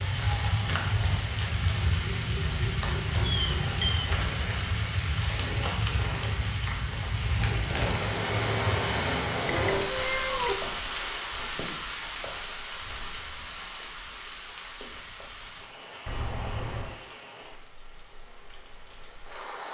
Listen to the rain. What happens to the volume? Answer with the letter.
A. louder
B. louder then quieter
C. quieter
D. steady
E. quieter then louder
C.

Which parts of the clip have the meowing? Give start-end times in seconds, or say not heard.
3.2-4.1, 9.4-10.6, 16.1-16.9.